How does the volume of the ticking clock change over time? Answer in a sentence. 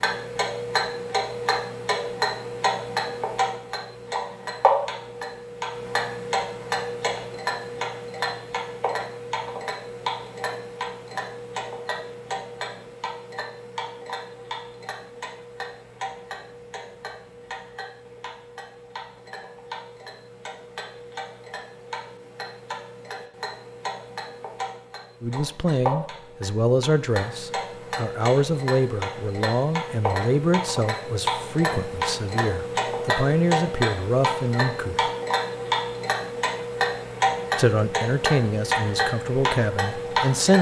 The volume of the ticking clock goes down, then up.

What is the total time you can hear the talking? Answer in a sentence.
The talking can be heard for 13 seconds in total.